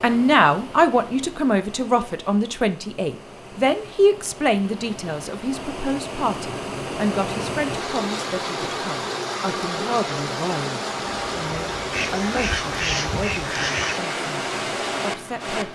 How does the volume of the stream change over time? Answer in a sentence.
The volume of the stream goes up.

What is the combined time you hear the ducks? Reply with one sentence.
You can hear the ducks for 2 seconds altogether.